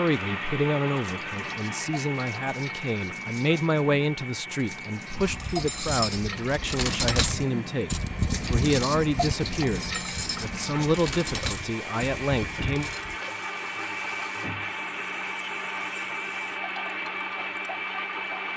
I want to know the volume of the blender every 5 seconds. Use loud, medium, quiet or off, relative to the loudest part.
loud, medium, loud, loud.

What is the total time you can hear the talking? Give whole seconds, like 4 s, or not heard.
13 s.